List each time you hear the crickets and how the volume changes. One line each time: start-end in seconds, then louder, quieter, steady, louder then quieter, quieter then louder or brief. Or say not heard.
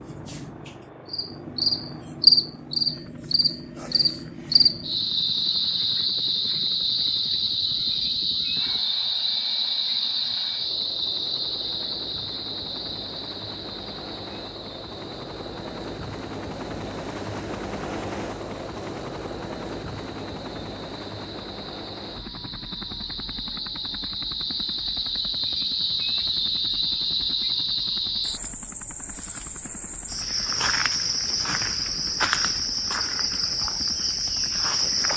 0.0-35.1 quieter then louder.